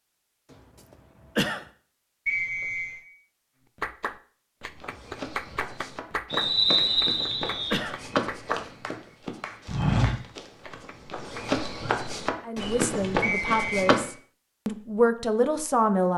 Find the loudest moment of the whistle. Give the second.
7 s.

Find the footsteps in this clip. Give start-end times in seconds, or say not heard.
4.8-14.1.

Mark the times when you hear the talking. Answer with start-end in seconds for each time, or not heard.
12.4-16.1.